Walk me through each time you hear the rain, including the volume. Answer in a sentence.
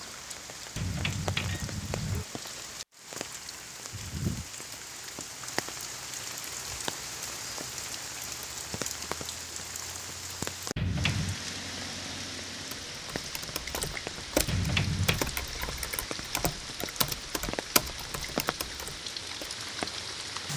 You can hear the rain from 0.0 to 20.5 s, at a steady volume.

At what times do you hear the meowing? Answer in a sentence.
The meowing can be heard from 0.8 to 2.2 s, from 10.8 to 11.4 s and from 14.4 to 15.2 s.